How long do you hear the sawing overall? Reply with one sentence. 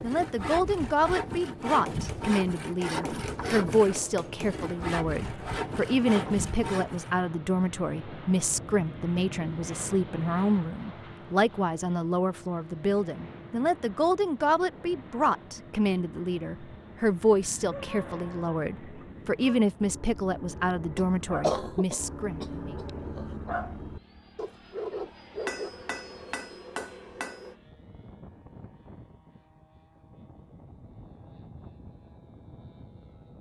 The sawing can be heard for 7 seconds in total.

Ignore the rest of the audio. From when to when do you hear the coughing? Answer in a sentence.
You can hear the coughing from 20.9 to 23.4 s.